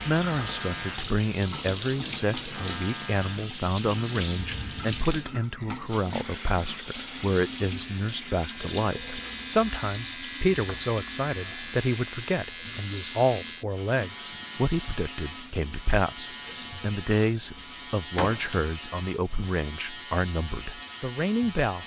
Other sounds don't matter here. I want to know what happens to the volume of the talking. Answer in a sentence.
The loudness of the talking stays about the same.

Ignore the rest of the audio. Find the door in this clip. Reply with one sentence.
The door can be heard from 4.3 to 5.0 s, from 10.6 to 11.0 s and from 18.1 to 18.6 s.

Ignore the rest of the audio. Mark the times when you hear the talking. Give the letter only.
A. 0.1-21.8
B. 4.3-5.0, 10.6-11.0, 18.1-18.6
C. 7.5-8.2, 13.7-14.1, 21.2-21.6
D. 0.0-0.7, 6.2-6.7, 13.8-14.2
A.